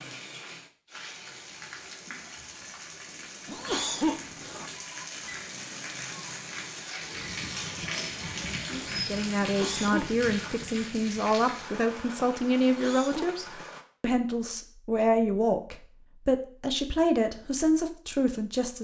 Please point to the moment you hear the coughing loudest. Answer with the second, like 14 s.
4 s.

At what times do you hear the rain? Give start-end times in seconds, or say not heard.
0.0-13.8.